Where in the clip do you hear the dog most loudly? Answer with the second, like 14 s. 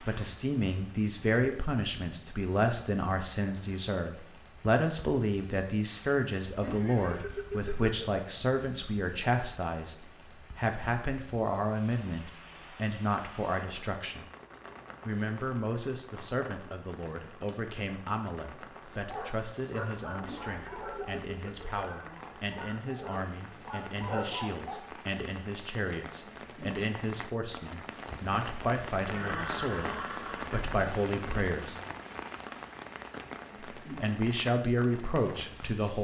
24 s.